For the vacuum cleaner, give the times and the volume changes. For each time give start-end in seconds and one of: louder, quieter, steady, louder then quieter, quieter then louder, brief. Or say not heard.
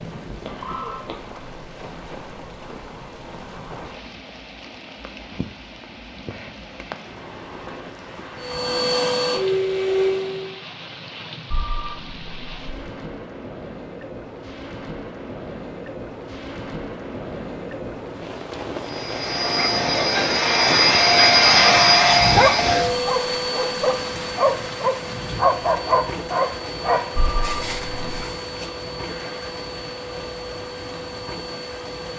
8.4-10.6 brief
18.8-32.1 quieter.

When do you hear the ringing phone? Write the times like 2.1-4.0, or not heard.
0.5-1.1, 11.5-12.7, 27.1-28.2.